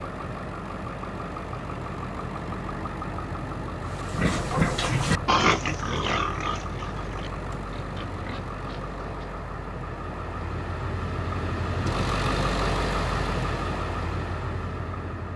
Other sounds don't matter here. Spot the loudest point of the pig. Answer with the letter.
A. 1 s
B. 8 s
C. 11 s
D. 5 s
D.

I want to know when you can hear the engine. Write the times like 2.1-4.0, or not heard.
0.0-15.3.